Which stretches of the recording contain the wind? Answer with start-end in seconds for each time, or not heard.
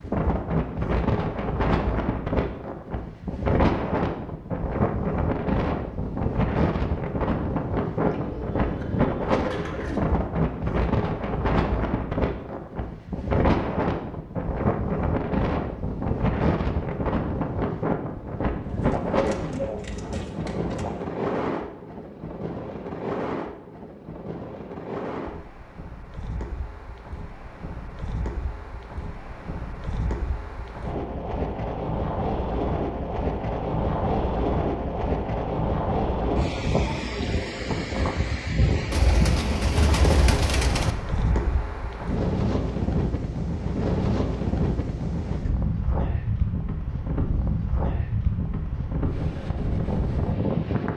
0.0-50.9.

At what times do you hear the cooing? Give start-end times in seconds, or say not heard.
8.0-10.0, 18.6-21.1, 38.9-41.0.